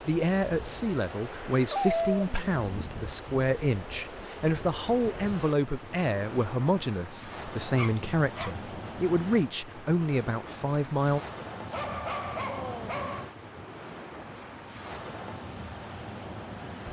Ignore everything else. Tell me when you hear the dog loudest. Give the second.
2 s.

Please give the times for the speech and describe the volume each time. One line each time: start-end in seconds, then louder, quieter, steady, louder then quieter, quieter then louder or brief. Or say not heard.
0.0-11.2 steady.